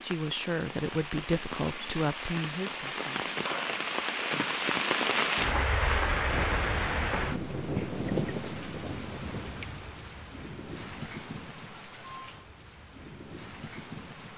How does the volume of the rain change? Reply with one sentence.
The loudness of the rain goes up, then down.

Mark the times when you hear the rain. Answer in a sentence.
You can hear the rain from 0.0 to 14.3 s.